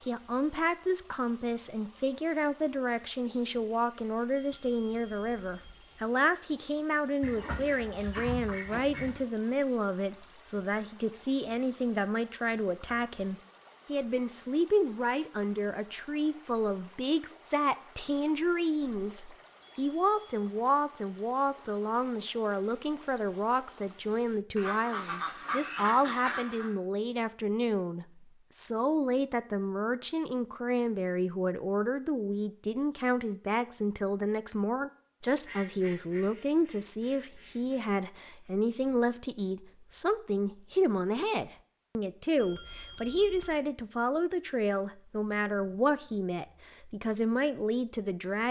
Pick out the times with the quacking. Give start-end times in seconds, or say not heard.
7.2-9.2, 24.6-26.7, 35.5-37.9.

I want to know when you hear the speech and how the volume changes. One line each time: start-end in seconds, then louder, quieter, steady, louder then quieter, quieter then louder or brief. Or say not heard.
0.1-48.4 steady.